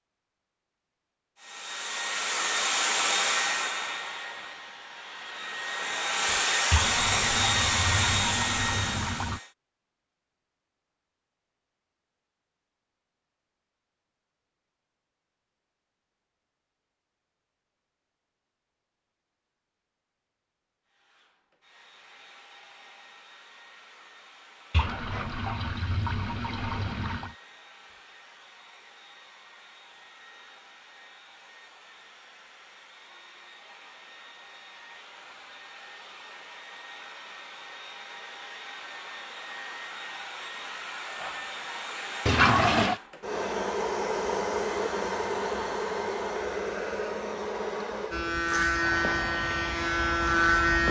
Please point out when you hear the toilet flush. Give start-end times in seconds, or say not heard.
6.7-9.4, 24.7-27.4, 42.2-43.0.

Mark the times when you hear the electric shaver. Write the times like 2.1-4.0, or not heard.
48.1-50.8.